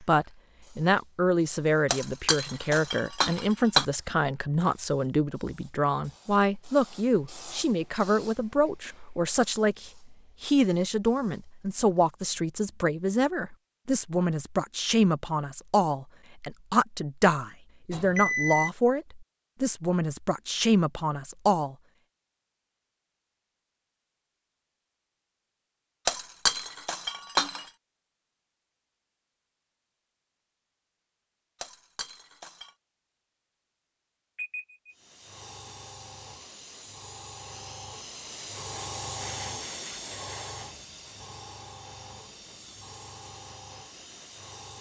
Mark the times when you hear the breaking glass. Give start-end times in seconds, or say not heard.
1.9-3.9, 26.1-27.7, 31.6-32.7.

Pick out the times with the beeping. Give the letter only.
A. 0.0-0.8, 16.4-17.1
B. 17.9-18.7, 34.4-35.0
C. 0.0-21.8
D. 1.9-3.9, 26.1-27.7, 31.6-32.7
B.